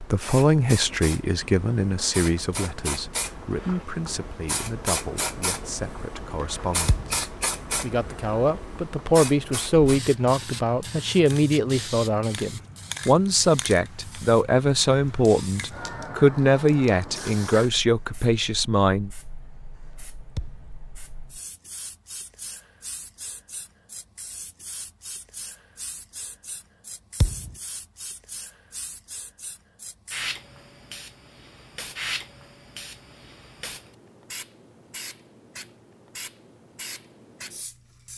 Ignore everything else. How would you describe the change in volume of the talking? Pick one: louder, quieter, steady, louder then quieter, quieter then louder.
quieter then louder.